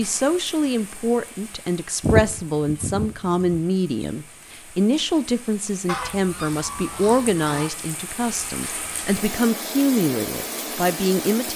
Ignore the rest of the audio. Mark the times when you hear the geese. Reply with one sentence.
You can hear the geese from 2.0 to 3.6 s and from 5.8 to 7.8 s.